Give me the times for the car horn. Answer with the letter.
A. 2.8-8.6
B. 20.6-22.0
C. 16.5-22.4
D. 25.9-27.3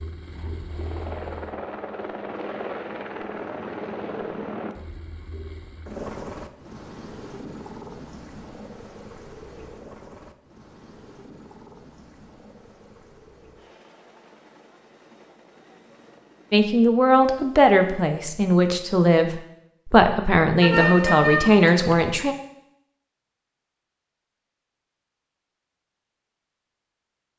B.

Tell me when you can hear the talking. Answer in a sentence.
The talking can be heard from 16.5 to 22.4 s.